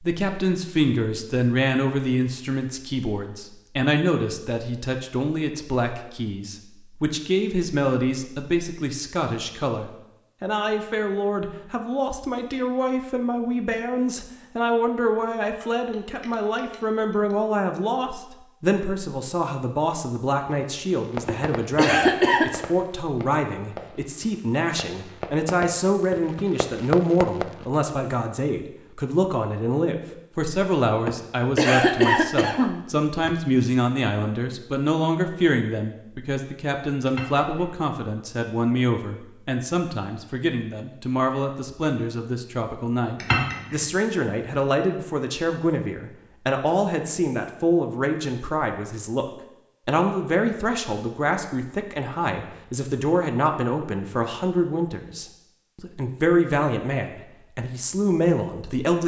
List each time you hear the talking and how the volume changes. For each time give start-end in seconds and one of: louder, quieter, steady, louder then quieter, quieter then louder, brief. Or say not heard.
0.0-59.0 steady.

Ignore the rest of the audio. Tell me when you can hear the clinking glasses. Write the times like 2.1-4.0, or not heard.
15.4-17.4, 37.0-37.7, 43.2-43.9.